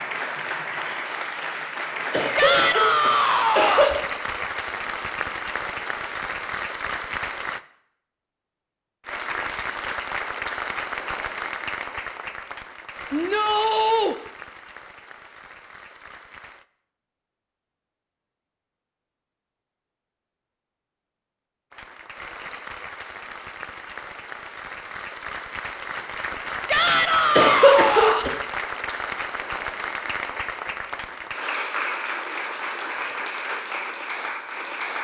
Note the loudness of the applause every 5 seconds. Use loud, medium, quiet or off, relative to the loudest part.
loud, loud, loud, quiet, medium, loud, loud.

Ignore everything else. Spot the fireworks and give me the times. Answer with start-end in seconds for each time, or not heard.
not heard.